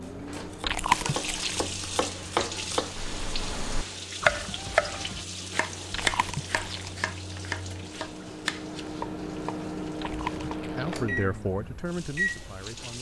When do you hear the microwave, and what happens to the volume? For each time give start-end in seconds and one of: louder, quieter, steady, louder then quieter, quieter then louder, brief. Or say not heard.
0.0-12.9 quieter then louder.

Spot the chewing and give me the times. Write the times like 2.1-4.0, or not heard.
0.7-1.7, 5.9-7.0, 10.0-11.1.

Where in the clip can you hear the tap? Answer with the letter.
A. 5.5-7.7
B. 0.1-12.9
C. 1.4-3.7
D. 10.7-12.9
B.